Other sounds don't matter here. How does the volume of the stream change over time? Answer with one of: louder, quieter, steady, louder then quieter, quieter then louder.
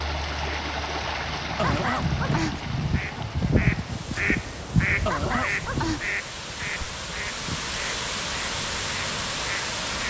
quieter then louder.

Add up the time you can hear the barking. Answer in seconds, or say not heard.
2 s.